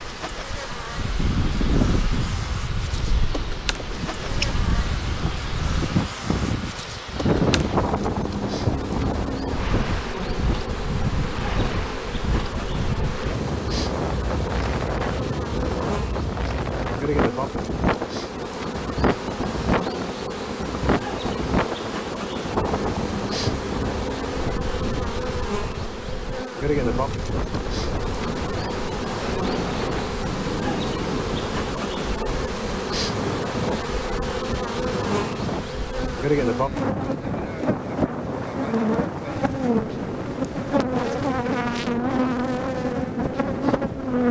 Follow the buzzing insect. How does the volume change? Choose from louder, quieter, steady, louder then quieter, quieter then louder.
louder.